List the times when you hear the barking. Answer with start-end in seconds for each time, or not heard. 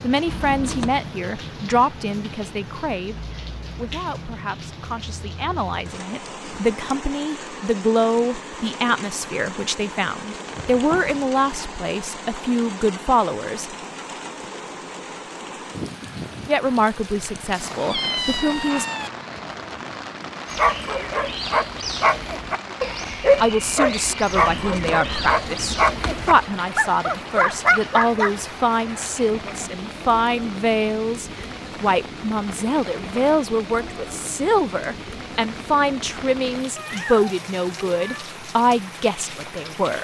20.4-28.4.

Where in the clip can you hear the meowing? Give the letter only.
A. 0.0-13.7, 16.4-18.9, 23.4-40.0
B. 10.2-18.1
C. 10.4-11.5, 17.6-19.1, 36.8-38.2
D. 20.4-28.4
C.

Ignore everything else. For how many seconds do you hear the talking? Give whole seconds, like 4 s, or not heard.
33 s.